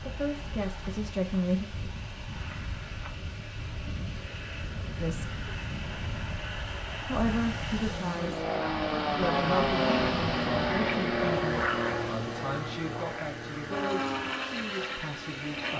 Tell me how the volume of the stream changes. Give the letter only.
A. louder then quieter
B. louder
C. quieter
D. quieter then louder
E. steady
A.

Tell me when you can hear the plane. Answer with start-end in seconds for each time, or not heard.
0.0-15.7.